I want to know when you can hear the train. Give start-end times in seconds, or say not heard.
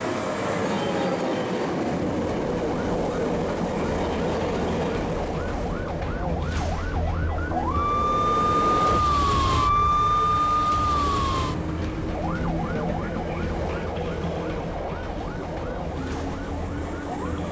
0.0-9.0, 10.8-17.4.